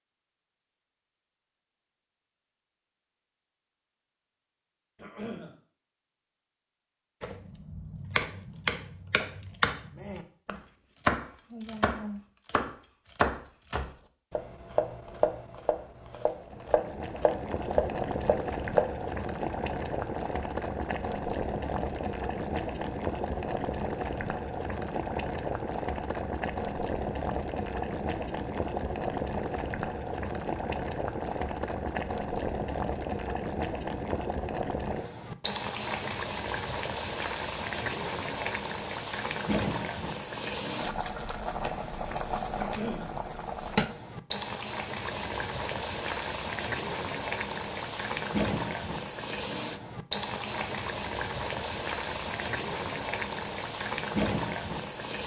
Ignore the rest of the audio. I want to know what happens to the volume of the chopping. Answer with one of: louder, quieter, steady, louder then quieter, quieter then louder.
steady.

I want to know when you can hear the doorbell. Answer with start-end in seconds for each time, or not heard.
not heard.